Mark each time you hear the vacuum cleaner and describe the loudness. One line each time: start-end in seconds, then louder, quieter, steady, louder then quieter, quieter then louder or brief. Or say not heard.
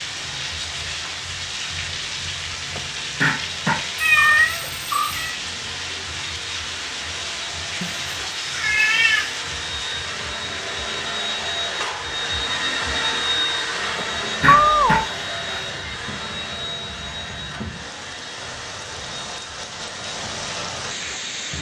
0.0-21.4 louder then quieter.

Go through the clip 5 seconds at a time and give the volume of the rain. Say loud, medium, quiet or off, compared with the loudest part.
loud, loud, medium, medium, loud.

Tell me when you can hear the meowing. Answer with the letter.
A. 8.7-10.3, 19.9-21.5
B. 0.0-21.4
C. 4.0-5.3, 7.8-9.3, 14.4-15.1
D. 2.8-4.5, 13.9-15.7
C.